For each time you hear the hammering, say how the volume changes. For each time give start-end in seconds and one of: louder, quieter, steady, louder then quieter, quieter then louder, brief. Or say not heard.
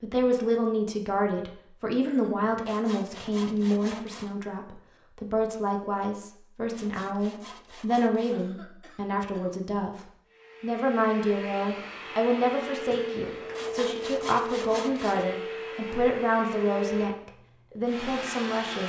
not heard.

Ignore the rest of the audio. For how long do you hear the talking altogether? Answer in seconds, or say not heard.
18 s.